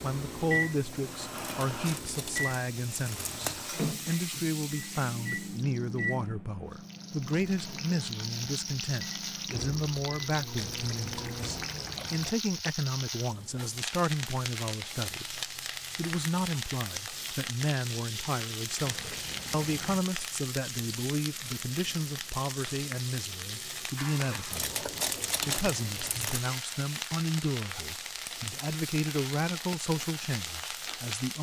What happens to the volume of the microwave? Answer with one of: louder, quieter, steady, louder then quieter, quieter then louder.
quieter.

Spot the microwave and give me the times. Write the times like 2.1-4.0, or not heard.
0.0-11.8.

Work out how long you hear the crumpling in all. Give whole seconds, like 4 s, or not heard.
4 s.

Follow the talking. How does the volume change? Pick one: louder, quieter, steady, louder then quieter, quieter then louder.
steady.